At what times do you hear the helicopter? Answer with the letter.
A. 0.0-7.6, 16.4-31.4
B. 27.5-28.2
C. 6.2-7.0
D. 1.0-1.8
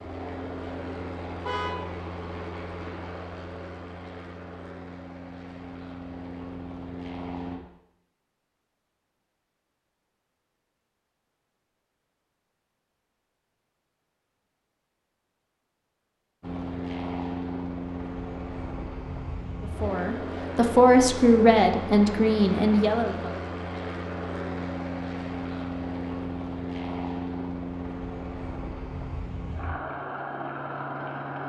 A.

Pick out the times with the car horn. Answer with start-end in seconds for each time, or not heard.
1.0-1.8.